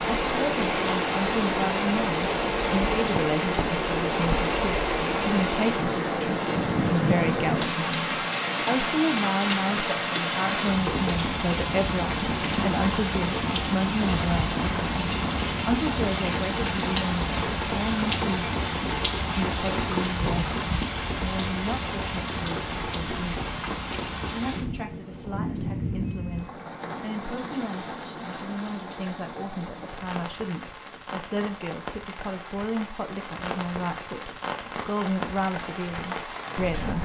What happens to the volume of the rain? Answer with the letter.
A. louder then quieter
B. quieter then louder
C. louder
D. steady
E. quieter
E.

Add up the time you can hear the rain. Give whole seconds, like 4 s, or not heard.
37 s.